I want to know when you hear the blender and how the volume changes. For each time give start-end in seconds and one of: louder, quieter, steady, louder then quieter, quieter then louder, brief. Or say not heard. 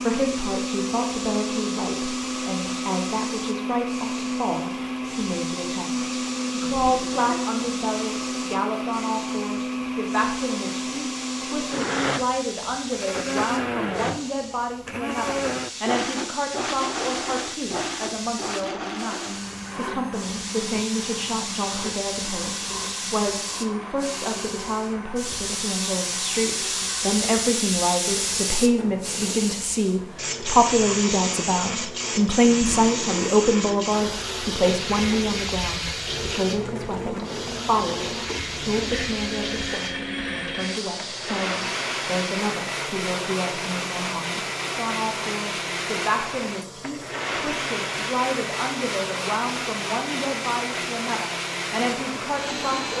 0.0-52.9 quieter then louder.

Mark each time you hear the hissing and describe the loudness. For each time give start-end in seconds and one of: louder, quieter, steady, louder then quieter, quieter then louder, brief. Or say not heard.
0.0-52.9 louder then quieter.